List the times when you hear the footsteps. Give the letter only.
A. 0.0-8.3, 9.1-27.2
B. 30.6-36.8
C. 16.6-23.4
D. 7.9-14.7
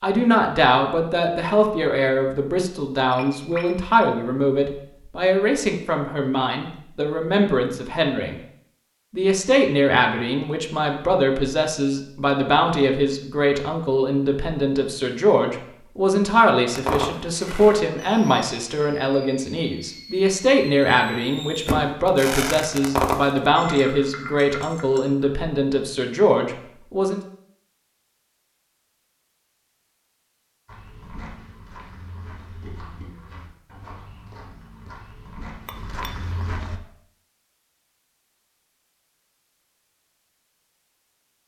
B.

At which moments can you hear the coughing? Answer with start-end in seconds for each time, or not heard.
not heard.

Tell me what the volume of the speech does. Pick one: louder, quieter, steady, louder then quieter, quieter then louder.
steady.